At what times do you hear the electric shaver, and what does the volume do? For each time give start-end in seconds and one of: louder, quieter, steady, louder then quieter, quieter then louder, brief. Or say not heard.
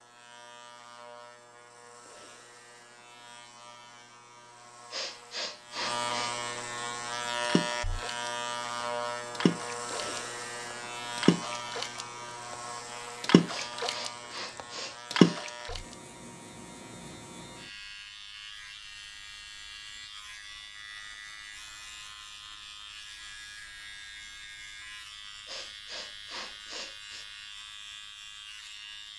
0.0-29.1 louder then quieter.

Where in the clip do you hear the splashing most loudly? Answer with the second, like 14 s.
15 s.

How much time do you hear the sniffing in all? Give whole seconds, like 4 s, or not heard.
5 s.